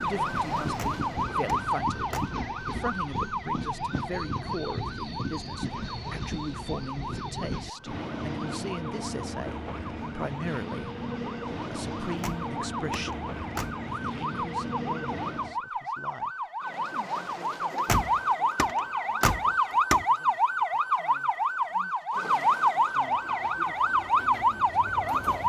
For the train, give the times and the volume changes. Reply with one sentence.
The train can be heard from 0.0 to 15.6 s, at a steady volume; and briefly from 23.1 to 25.4 s.